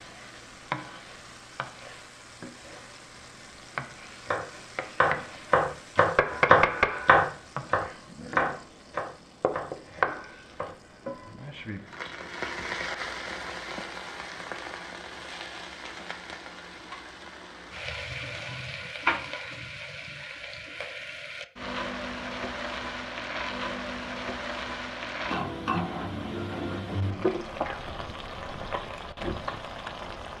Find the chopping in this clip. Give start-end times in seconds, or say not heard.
4.2-10.8.